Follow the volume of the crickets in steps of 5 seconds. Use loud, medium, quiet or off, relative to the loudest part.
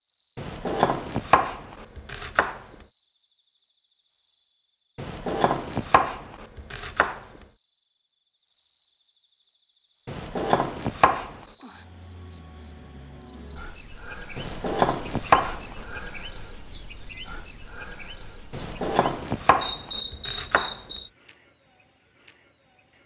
medium, medium, loud, loud, medium.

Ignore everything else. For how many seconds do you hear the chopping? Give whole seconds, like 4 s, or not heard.
10 s.